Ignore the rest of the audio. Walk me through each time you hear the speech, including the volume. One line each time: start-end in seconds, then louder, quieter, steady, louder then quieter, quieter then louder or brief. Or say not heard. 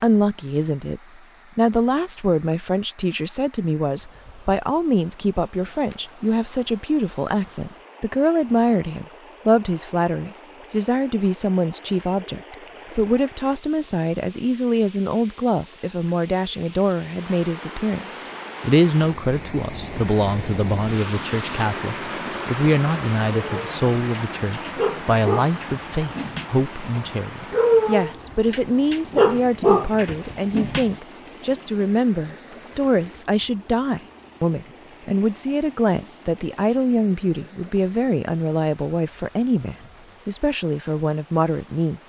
0.0-42.0 steady.